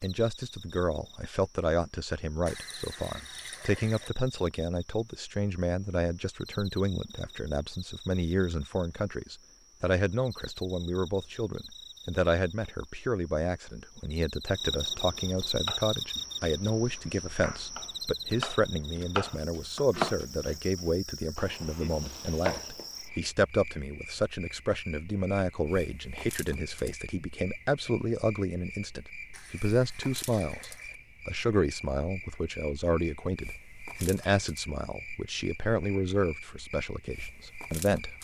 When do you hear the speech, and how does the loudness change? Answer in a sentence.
The speech can be heard from 0.0 to 38.2 s, at a steady volume.